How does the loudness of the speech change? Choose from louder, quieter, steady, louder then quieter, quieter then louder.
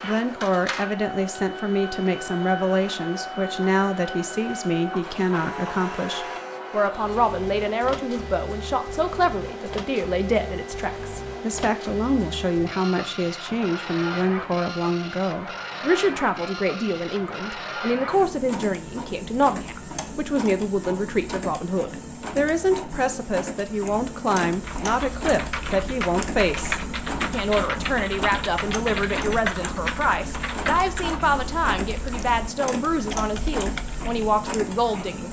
steady.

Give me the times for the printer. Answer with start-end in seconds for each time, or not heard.
0.0-35.2.